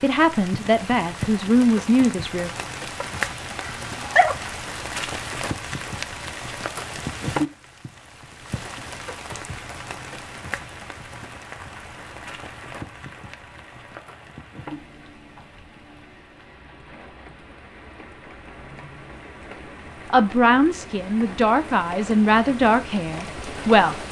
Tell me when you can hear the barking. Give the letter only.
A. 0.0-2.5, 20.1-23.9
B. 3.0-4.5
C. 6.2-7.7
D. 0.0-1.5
B.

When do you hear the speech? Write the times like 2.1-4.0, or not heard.
0.0-2.5, 20.1-23.9.